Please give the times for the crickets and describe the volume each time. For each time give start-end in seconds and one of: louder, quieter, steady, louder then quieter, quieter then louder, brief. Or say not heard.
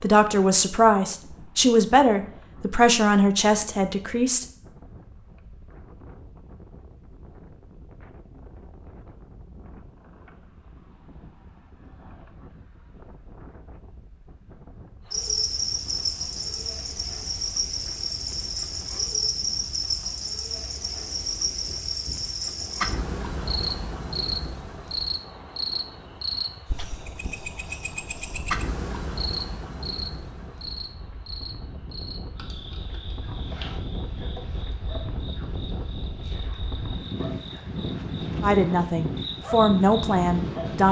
15.1-40.8 quieter.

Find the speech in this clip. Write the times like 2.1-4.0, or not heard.
0.0-4.5, 38.4-40.8.